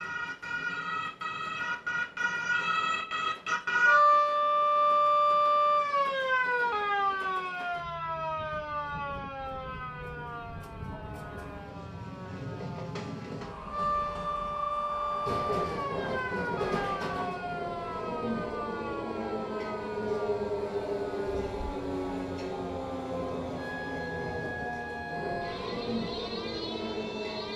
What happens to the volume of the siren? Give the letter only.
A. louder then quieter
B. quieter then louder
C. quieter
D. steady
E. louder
C.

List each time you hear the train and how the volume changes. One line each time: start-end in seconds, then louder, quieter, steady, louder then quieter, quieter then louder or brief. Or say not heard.
0.1-27.5 louder.